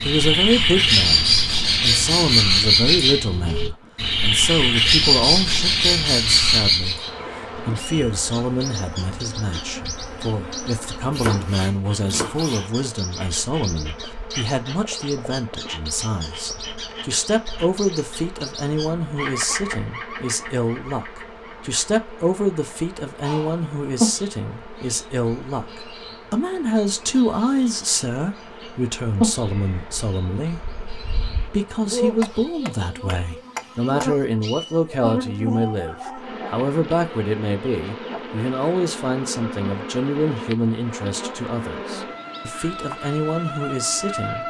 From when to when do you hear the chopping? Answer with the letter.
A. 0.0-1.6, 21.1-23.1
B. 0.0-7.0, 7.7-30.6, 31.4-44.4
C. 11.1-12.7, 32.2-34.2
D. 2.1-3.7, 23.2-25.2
C.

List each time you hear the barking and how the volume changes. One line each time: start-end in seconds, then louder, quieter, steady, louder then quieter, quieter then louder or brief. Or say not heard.
not heard.